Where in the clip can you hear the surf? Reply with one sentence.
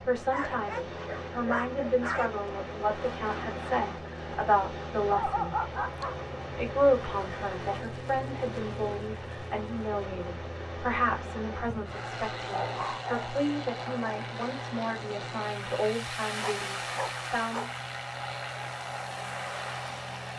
You can hear the surf from 0.0 to 20.3 s.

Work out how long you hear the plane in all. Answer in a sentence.
You can hear the plane for 20 seconds altogether.